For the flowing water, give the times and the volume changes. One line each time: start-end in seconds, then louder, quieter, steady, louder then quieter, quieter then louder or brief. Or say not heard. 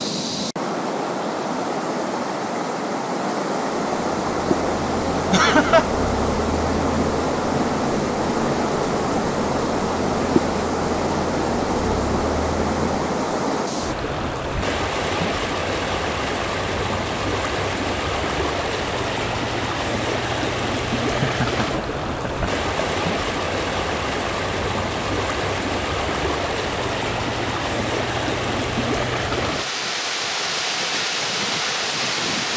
0.0-32.5 steady.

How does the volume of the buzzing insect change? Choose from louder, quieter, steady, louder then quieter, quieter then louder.
steady.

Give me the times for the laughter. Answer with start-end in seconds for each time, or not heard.
5.3-5.8, 21.0-22.9.